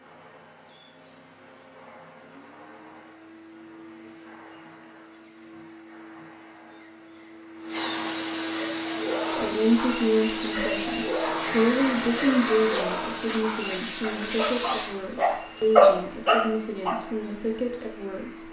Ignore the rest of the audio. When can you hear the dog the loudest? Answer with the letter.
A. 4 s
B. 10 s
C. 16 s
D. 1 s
C.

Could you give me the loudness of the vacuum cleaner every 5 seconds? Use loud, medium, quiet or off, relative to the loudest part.
quiet, loud, loud, quiet.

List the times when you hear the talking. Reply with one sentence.
The talking can be heard from 9.3 to 18.4 s.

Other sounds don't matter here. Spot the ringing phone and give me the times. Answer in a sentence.
You can't hear the ringing phone here.